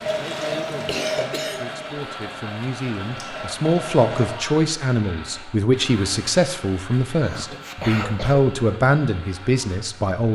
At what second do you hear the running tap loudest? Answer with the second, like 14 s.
1 s.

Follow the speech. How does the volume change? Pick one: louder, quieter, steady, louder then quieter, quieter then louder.
louder.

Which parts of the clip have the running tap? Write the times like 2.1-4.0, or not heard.
0.0-4.3.